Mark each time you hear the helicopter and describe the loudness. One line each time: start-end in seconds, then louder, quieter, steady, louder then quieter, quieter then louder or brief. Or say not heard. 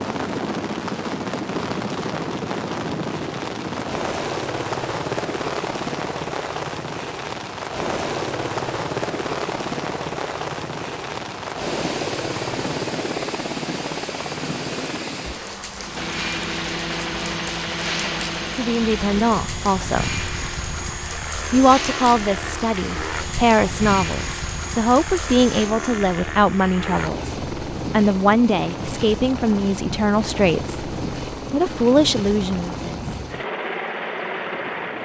0.0-35.0 steady.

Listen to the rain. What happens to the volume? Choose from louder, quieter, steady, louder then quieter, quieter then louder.
steady.